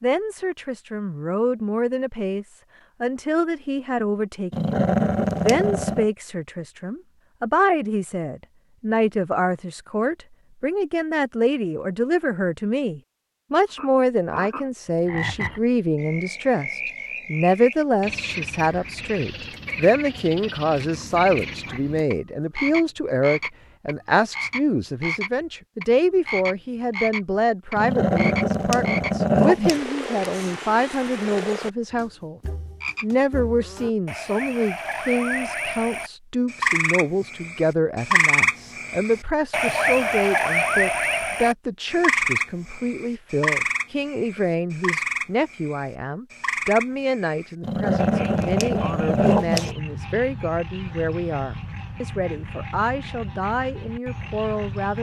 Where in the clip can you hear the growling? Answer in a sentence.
You can hear the growling from 4.5 to 6.0 s, from 27.8 to 29.8 s and from 47.6 to 49.8 s.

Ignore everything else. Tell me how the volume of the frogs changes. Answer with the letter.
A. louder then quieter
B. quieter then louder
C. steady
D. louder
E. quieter
A.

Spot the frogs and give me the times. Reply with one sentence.
You can hear the frogs from 13.7 to 54.9 s.